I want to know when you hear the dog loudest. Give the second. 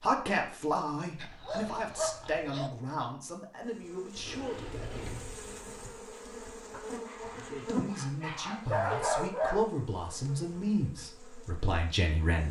9 s.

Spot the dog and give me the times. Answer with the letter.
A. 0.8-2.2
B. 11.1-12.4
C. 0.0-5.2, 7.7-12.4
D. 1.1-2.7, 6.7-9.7
D.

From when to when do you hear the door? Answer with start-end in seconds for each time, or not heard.
4.2-5.5.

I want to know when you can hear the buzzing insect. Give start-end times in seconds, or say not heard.
3.6-12.4.